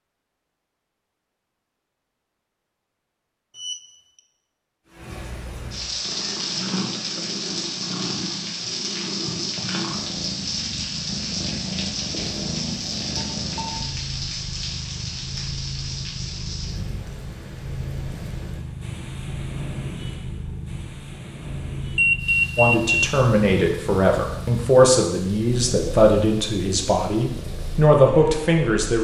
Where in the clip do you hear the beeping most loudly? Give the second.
22 s.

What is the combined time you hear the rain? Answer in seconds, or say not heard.
24 s.